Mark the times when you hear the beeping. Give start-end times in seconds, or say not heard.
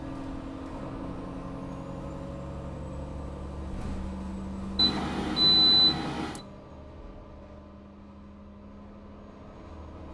4.8-6.4.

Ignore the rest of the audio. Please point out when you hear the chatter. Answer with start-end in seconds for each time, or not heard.
not heard.